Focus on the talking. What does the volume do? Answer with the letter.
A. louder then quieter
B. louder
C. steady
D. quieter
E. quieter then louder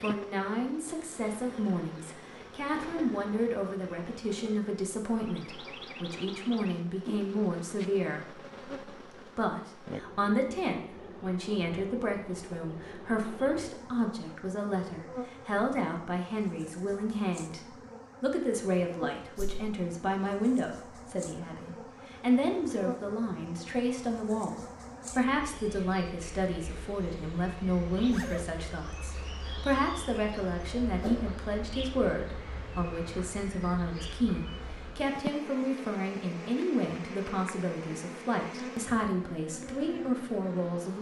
C.